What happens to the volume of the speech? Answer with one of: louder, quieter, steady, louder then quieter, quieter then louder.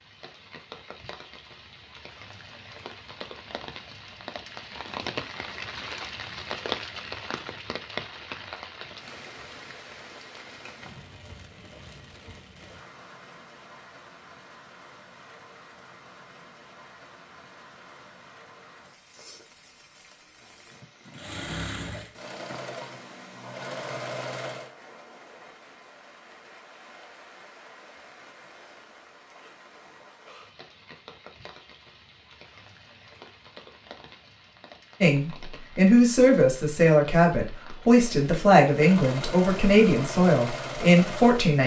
steady.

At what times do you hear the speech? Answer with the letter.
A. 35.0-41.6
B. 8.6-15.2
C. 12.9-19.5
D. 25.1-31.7
A.